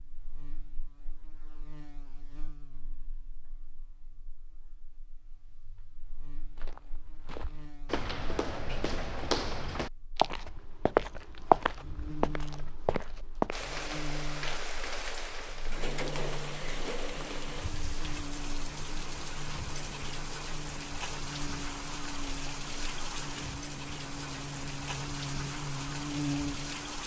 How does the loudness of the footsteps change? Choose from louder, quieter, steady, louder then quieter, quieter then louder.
louder then quieter.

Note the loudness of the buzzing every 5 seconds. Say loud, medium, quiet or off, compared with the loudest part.
quiet, quiet, medium, medium, medium, loud.